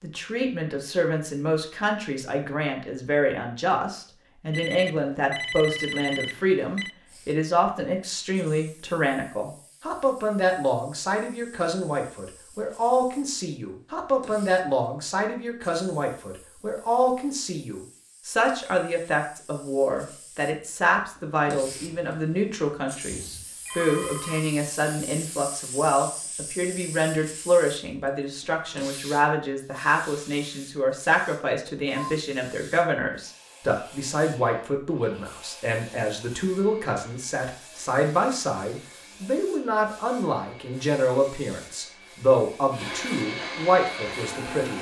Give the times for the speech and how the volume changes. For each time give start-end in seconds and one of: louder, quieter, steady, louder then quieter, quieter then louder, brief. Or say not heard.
0.0-44.7 steady.